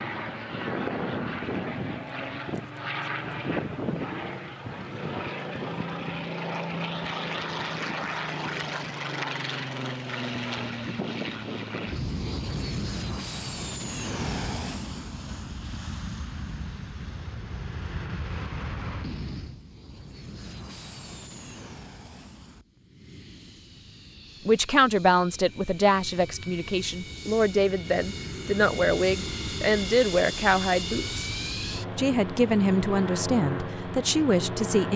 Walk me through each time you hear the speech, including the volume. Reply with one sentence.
The speech can be heard from 24.4 to 31.2 s, getting quieter then louder; and briefly from 31.9 to 34.9 s.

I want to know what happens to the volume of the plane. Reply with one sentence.
The loudness of the plane goes down, then up.